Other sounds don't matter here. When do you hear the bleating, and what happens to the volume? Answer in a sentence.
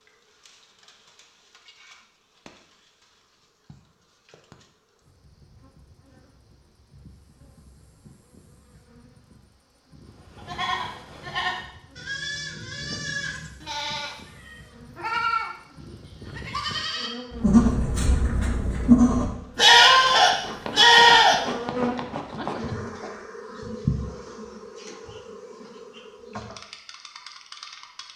You can hear the bleating from 10.3 to 21.4 s, getting louder.